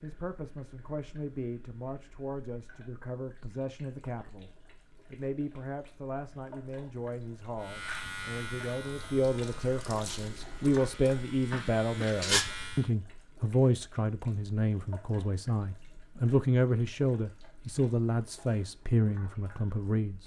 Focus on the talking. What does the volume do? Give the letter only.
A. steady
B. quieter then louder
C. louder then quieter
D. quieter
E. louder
E.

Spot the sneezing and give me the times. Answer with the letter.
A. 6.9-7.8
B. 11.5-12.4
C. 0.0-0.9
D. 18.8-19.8
B.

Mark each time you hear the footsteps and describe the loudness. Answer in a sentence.
You can't hear the footsteps here.